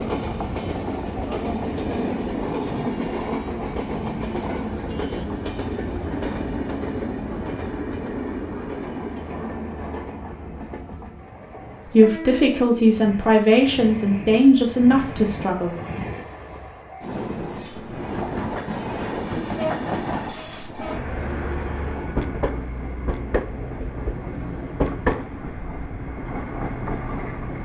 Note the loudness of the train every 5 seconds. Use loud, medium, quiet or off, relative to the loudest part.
loud, loud, medium, loud, loud, loud.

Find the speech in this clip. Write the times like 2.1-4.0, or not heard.
11.8-15.8.